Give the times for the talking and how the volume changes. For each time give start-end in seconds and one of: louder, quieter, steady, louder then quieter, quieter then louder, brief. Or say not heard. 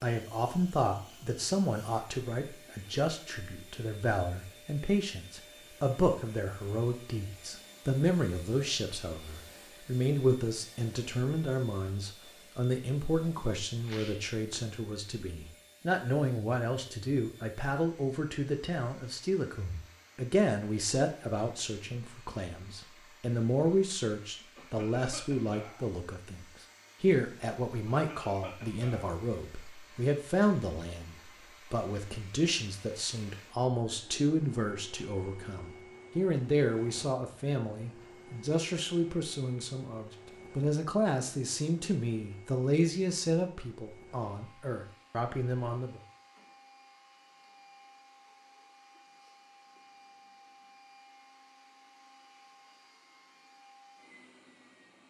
0.0-46.0 steady.